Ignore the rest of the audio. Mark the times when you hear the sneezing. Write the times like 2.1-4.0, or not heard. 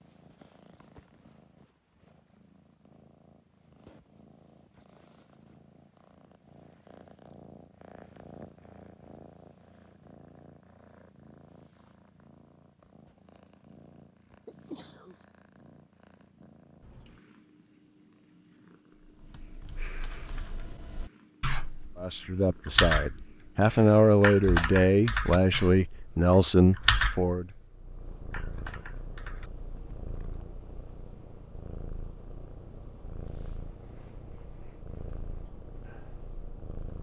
14.4-15.2.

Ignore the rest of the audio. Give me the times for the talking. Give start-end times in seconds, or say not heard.
21.9-27.4.